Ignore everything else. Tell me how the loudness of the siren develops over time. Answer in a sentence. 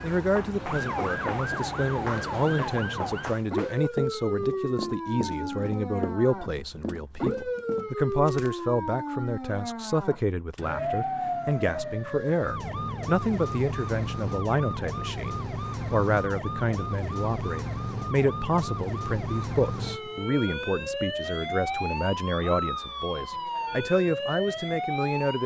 The volume of the siren stays about the same.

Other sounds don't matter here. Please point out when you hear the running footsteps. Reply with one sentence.
The running footsteps can be heard from 0.0 to 8.5 s.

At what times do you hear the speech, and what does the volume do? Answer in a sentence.
You can hear the speech from 0.0 to 25.4 s, at a steady volume.